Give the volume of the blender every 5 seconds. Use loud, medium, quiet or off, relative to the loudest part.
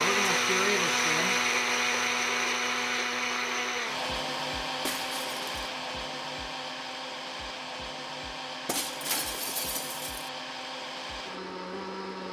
loud, medium, medium.